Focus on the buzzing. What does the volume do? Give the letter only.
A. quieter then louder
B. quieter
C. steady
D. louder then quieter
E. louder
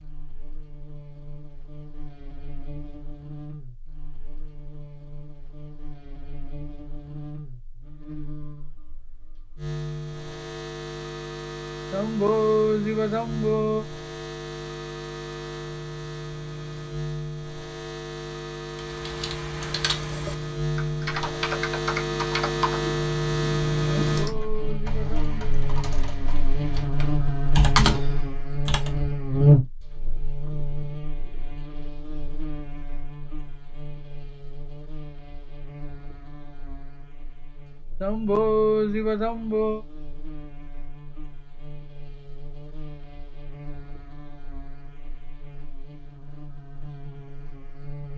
D.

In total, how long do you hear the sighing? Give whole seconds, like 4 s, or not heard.
5 s.